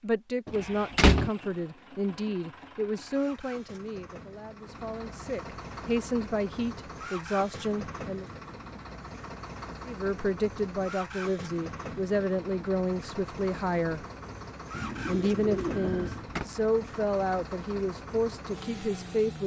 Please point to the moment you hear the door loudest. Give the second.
1 s.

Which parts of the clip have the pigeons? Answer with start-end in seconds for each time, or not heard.
14.7-16.2.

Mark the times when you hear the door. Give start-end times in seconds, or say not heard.
0.5-1.3, 15.8-16.4.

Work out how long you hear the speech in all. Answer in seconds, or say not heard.
17 s.